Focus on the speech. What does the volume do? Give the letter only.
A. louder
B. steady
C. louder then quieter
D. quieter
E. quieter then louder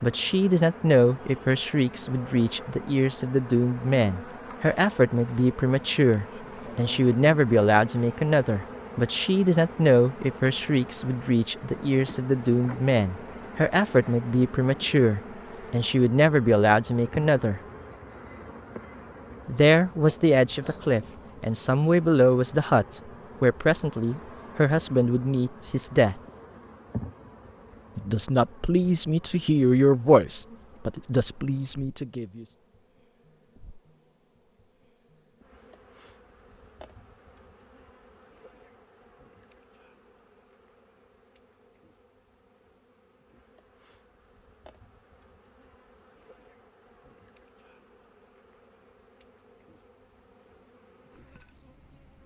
B.